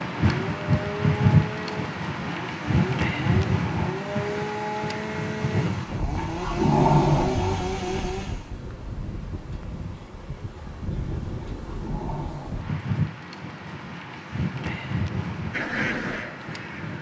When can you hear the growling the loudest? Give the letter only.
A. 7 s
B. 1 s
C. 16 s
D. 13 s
A.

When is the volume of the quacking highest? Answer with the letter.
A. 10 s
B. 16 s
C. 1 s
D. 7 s
B.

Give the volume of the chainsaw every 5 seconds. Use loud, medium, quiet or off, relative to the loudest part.
loud, loud, off, off.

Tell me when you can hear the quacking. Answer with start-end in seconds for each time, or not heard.
15.5-16.9.